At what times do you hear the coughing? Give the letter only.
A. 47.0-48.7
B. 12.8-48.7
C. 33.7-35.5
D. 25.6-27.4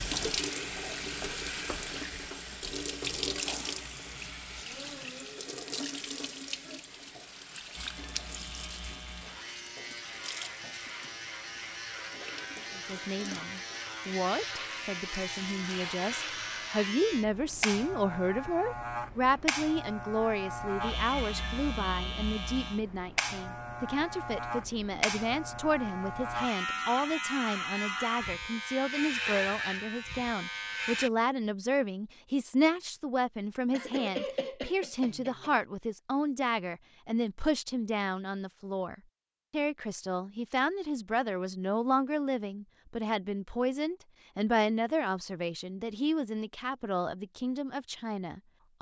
C.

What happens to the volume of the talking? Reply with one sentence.
The loudness of the talking stays about the same.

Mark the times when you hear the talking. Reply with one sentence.
The talking can be heard from 12.8 to 48.7 s.